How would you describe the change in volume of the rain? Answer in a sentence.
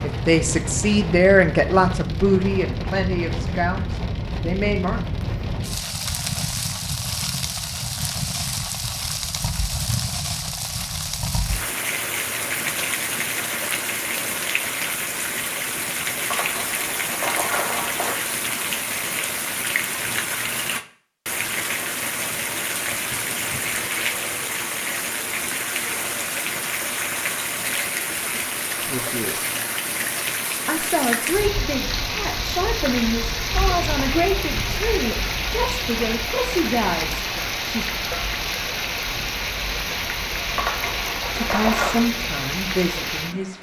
The volume of the rain stays about the same.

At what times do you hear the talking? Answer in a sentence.
You can hear the talking from 0.0 to 5.0 s, from 28.8 to 29.4 s, from 30.6 to 37.9 s and from 41.4 to 43.5 s.